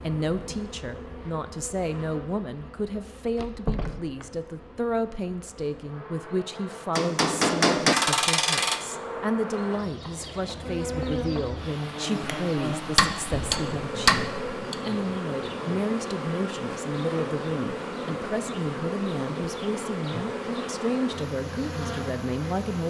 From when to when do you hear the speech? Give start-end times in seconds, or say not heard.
0.0-22.8.